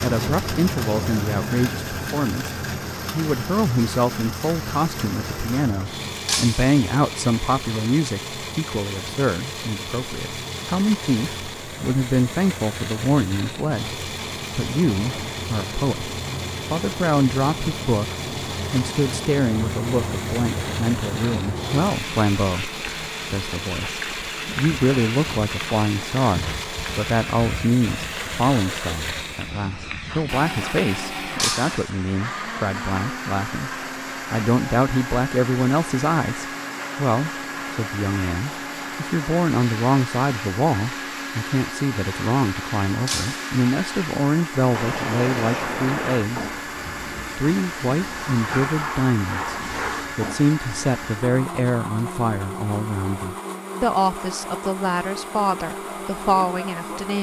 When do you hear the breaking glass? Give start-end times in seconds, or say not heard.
6.2-6.8, 31.4-31.9, 43.0-43.5.